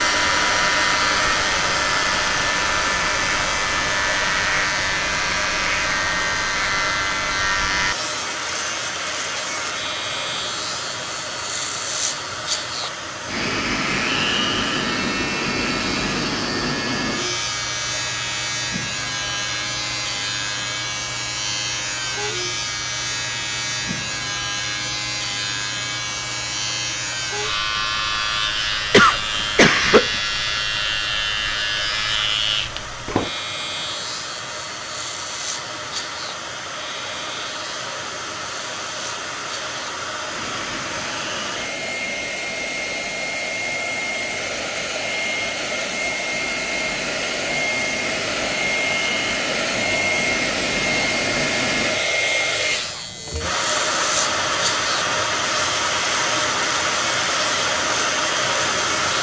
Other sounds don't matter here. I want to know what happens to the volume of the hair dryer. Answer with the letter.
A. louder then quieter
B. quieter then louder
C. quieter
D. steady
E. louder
B.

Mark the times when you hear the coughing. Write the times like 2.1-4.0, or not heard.
28.9-30.1.